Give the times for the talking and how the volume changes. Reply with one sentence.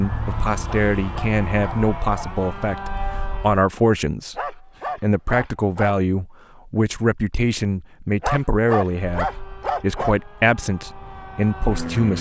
You can hear the talking from 0.0 to 12.1 s, at a steady volume.